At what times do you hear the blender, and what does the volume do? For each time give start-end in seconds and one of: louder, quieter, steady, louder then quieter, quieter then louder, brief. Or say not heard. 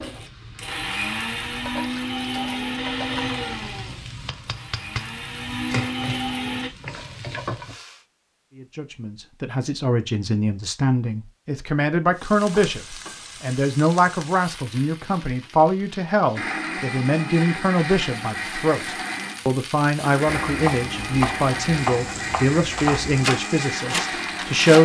0.0-6.7 quieter then louder
16.4-24.8 steady.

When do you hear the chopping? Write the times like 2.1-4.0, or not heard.
20.2-24.8.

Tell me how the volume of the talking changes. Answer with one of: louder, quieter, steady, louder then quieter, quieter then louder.
steady.